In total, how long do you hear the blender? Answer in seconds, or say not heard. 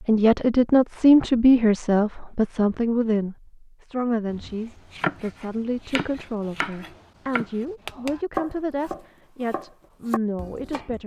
not heard.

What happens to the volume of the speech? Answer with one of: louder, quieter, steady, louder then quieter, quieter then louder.
quieter.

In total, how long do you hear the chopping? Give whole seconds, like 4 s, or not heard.
7 s.